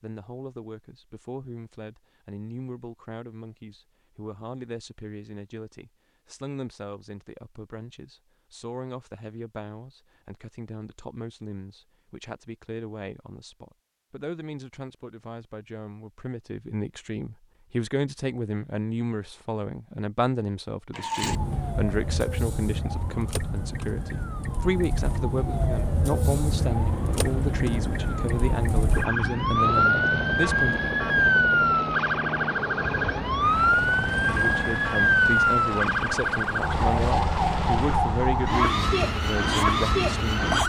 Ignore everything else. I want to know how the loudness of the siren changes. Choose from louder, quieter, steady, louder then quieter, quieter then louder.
louder.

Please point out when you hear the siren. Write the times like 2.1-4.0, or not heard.
20.9-40.6.